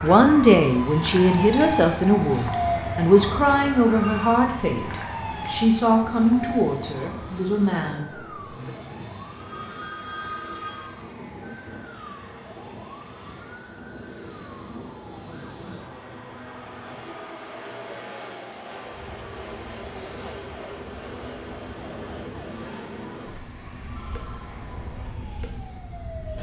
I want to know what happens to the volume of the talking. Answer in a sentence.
The volume of the talking goes down.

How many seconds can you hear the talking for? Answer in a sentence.
The talking can be heard for 9 seconds in total.